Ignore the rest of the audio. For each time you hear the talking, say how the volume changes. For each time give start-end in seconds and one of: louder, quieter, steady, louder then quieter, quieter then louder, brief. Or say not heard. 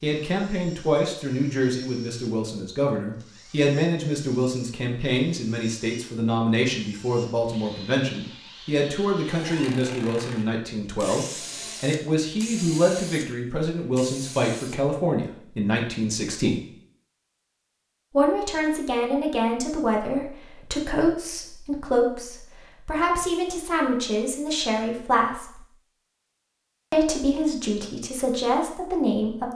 0.0-16.6 steady
18.1-25.6 steady
26.9-29.5 brief.